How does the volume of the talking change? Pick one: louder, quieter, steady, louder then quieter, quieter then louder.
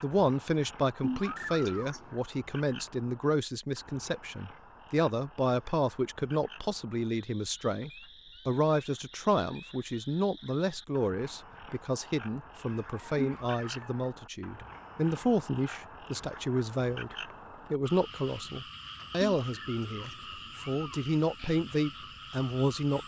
steady.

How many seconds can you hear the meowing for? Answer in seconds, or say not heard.
3 s.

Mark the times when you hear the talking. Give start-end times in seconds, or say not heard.
0.0-23.0.